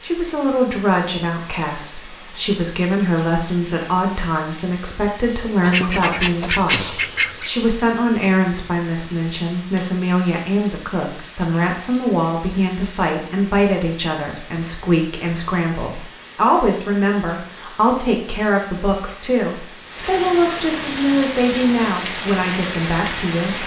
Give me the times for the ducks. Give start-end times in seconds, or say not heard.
5.6-7.5.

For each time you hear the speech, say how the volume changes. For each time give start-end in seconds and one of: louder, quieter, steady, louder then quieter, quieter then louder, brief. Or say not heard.
0.0-23.6 steady.